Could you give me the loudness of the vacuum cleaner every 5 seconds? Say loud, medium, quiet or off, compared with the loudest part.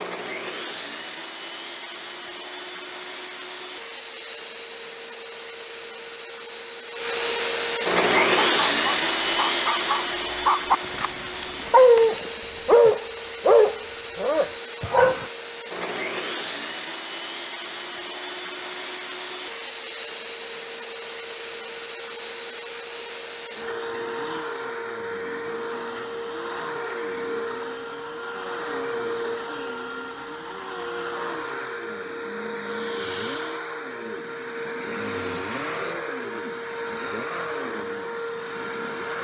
medium, loud, medium, medium, medium, medium, medium, medium.